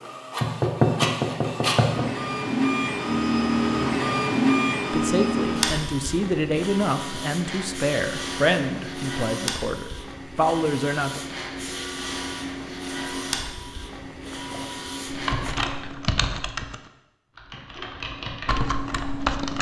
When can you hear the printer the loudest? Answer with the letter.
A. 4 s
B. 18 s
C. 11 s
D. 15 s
A.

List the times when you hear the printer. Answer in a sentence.
The printer can be heard from 0.0 to 15.6 s.